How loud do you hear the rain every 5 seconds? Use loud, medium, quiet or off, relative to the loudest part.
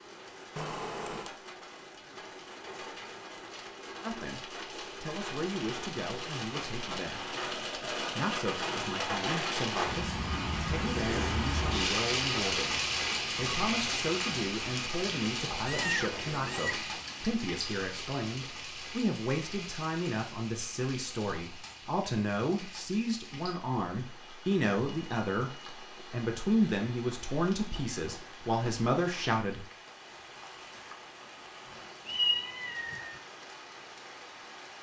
quiet, loud, loud, medium, quiet, quiet, quiet.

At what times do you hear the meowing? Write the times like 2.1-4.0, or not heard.
0.6-1.3, 15.7-16.9, 32.0-33.2.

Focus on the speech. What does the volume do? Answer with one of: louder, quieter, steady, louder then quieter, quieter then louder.
louder.